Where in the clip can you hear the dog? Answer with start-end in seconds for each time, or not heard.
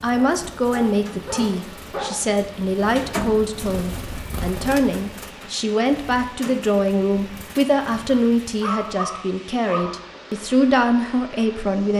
0.1-2.1, 8.1-10.0.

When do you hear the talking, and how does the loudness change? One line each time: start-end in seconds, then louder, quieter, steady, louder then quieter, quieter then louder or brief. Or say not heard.
0.0-11.9 steady.